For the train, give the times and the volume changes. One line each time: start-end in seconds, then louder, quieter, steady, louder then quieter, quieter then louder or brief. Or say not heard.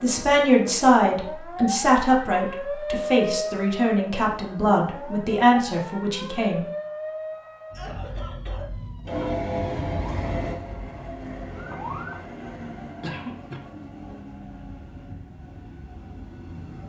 9.1-16.8 quieter.